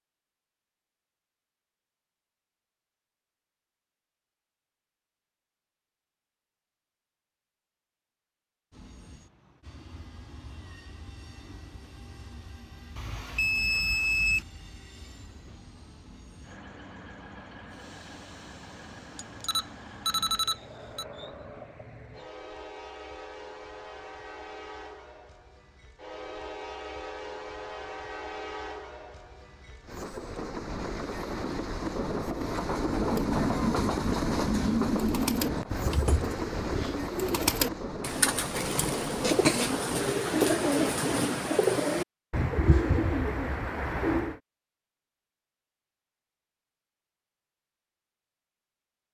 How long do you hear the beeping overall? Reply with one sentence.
The beeping can be heard for 4 seconds in total.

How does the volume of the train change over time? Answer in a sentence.
The volume of the train goes up.